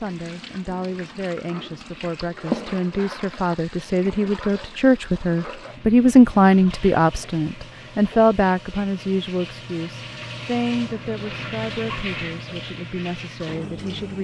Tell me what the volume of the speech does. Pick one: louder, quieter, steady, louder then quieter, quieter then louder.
louder then quieter.